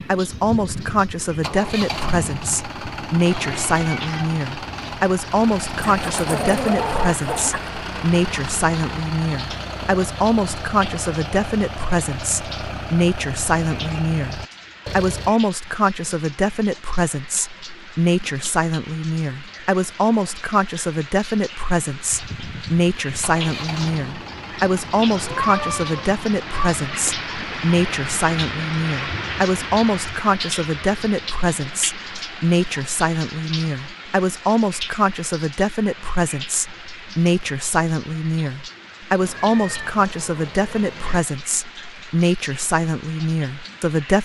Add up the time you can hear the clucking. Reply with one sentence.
You can hear the clucking for 2 seconds altogether.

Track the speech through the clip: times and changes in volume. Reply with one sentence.
You can hear the speech from 0.1 to 44.2 s, at a steady volume.